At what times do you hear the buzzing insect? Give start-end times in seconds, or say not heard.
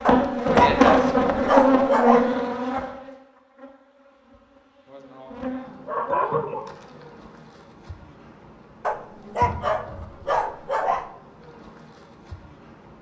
0.0-12.9.